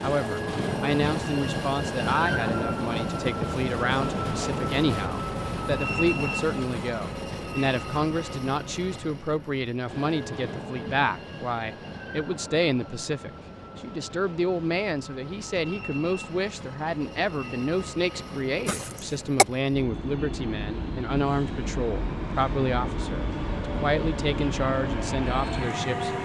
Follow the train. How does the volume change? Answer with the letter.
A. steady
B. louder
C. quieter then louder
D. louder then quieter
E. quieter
C.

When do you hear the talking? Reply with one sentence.
The talking can be heard from 0.0 to 26.1 s.